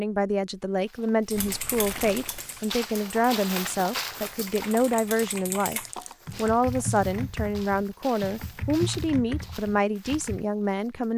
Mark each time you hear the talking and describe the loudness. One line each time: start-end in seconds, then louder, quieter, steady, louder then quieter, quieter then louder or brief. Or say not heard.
0.0-11.1 steady.